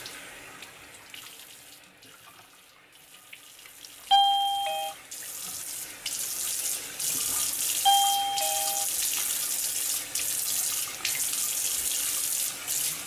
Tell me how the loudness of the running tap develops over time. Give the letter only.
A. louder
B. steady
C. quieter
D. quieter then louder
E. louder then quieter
A.